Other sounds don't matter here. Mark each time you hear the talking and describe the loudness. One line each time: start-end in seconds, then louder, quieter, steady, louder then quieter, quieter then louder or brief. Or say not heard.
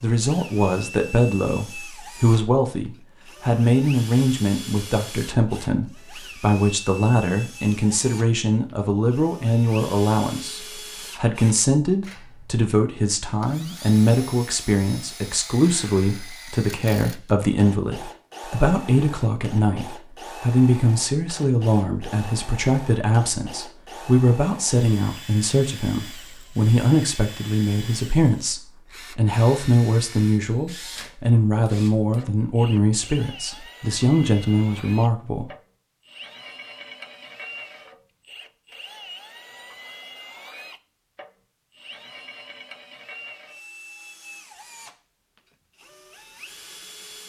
0.0-35.5 steady.